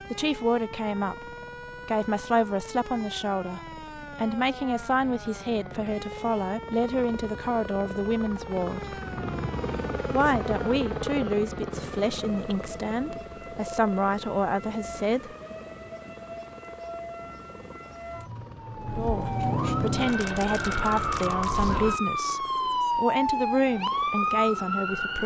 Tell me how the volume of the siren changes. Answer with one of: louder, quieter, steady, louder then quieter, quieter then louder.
louder.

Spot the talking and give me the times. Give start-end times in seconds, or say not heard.
0.1-8.9, 10.1-15.3, 18.9-25.2.